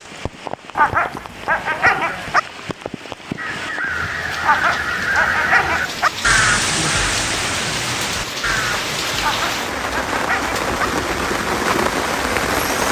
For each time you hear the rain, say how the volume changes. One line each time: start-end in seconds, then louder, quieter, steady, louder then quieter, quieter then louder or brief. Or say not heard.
0.0-12.8 louder.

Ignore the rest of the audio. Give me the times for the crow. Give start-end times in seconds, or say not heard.
3.4-9.6.